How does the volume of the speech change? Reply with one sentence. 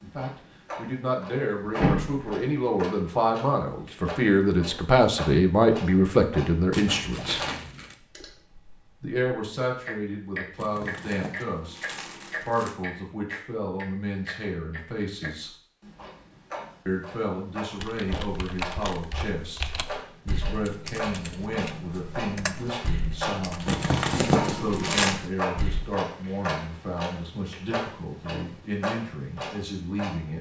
The loudness of the speech goes down.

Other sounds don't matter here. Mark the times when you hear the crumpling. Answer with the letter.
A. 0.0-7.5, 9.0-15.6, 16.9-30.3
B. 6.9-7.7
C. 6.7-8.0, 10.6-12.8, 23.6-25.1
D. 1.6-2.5
C.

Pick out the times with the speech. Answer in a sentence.
You can hear the speech from 0.0 to 7.5 s, from 9.0 to 15.6 s and from 16.9 to 30.3 s.